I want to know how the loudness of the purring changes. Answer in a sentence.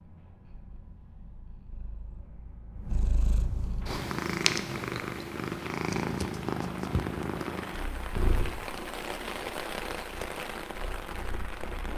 The volume of the purring goes up, then down.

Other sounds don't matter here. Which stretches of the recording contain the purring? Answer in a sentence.
The purring can be heard from 0.0 to 11.9 s.